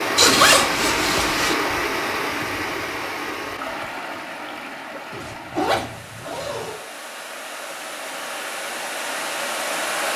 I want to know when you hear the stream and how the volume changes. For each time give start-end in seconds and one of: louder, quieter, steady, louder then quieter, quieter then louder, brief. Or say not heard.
0.0-10.1 quieter then louder.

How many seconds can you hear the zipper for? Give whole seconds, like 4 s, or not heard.
3 s.